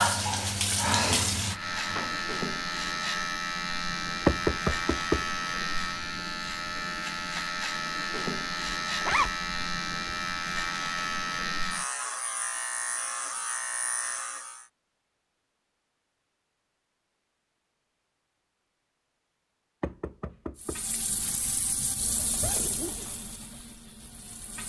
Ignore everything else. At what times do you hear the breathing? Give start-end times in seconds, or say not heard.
not heard.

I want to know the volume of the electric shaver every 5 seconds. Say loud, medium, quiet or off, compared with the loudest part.
loud, loud, loud, off, off.